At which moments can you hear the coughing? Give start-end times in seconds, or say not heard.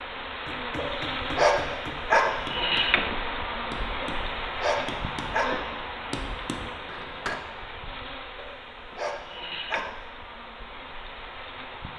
not heard.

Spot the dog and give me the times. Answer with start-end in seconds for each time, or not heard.
0.8-2.4, 4.0-5.5, 8.3-10.0.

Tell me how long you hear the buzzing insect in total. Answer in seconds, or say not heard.
12 s.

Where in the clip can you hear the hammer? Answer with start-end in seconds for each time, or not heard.
0.5-7.4.